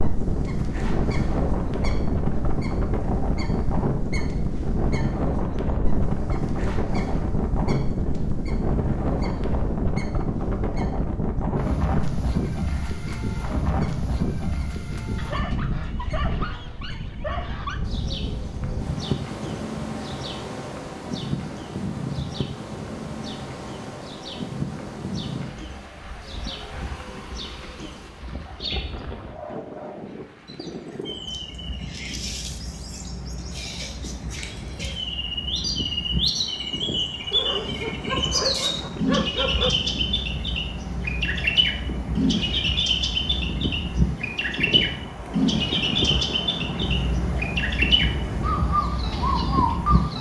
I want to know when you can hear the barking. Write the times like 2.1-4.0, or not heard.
15.2-17.9, 37.3-39.8.